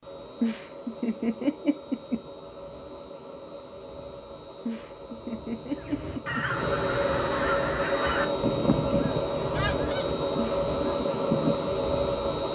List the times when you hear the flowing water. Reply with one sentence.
You can't hear the flowing water here.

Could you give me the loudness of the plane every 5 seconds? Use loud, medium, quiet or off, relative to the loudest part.
quiet, loud, loud.